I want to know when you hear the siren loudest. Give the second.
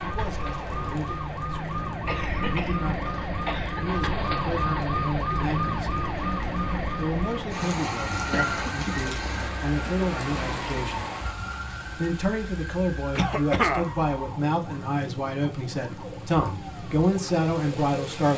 5 s.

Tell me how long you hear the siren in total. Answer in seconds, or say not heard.
18 s.